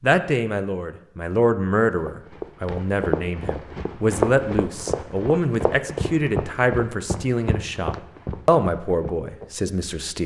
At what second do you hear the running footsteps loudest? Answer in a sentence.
The volume of the running footsteps peaks at 4 seconds.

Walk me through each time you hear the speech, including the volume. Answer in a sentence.
You can hear the speech from 0.0 to 10.2 s, at a steady volume.